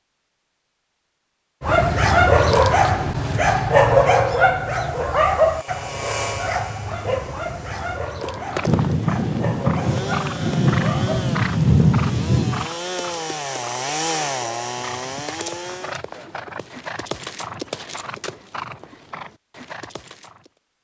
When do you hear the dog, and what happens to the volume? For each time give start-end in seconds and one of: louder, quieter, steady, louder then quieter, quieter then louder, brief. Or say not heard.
1.6-11.3 quieter.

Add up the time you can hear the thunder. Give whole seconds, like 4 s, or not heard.
4 s.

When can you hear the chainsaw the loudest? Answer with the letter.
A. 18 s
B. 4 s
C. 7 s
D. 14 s
D.